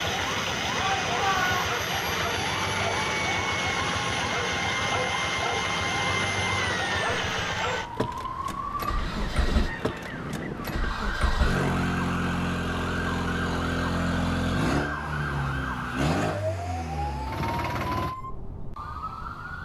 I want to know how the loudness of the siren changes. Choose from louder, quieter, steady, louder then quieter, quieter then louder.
steady.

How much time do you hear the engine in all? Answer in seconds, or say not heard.
18 s.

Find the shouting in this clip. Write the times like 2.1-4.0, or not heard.
0.8-1.7.